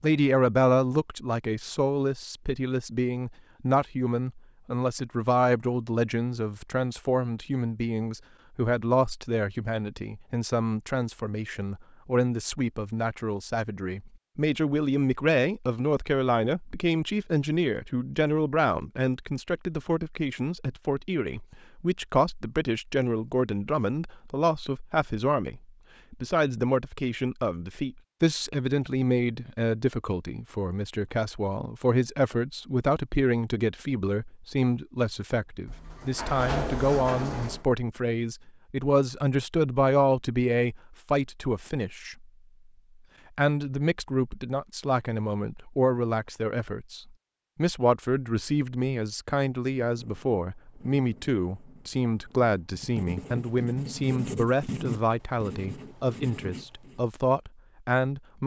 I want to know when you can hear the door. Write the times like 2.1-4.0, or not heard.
35.6-37.6.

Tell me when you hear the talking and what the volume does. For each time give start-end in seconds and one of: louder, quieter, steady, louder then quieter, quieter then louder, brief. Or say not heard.
0.0-42.3 steady
43.4-58.4 steady.